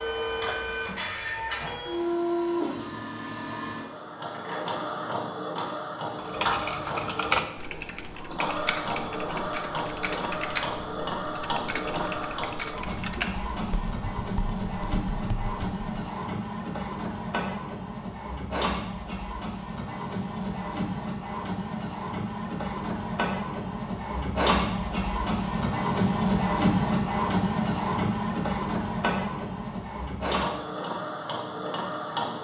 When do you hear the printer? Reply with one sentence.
The printer can be heard from 0.0 to 32.4 s.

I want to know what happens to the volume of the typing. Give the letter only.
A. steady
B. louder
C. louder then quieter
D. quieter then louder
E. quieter
E.